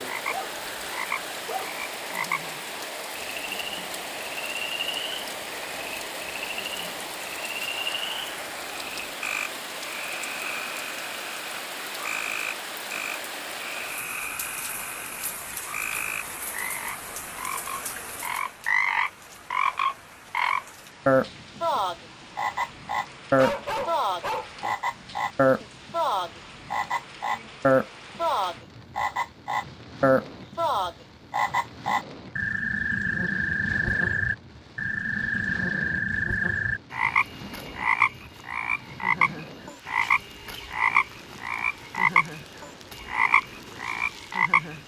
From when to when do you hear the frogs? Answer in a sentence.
You can hear the frogs from 0.0 to 44.8 s.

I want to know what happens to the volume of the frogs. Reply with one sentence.
The loudness of the frogs goes up.